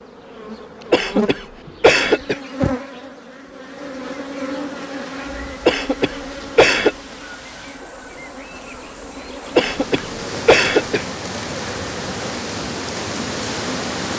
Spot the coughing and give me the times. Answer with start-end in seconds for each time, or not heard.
0.9-2.4, 5.7-7.0, 9.6-11.1.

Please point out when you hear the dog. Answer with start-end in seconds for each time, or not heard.
not heard.